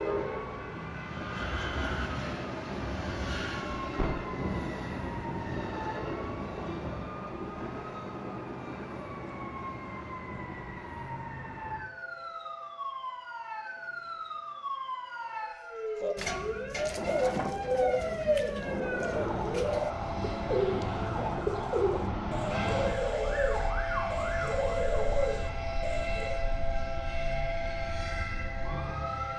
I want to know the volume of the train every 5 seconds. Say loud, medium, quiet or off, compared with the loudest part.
loud, loud, quiet, medium, loud, loud.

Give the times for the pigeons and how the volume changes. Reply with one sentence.
The pigeons can be heard from 16.0 to 26.4 s, at a steady volume.